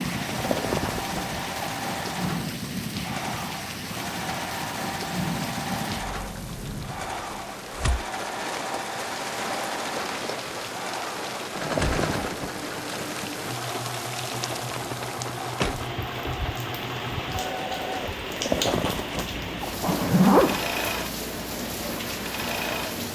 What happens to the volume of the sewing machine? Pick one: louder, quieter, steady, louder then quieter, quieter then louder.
steady.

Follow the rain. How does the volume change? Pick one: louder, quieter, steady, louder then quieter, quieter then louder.
steady.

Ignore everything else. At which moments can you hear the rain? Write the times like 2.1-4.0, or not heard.
0.0-23.1.